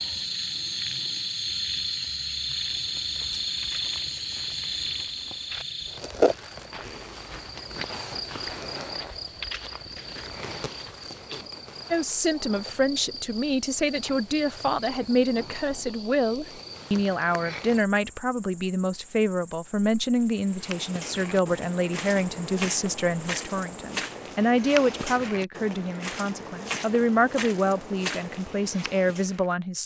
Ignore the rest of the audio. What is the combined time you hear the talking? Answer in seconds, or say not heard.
18 s.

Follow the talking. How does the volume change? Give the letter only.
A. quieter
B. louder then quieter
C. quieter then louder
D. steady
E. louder
D.